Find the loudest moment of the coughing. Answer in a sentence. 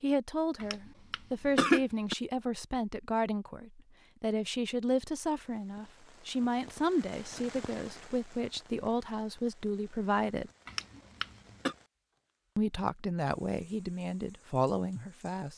The loudest moment of the coughing is at 2 seconds.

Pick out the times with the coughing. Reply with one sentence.
The coughing can be heard from 0.6 to 2.1 s and from 10.7 to 11.8 s.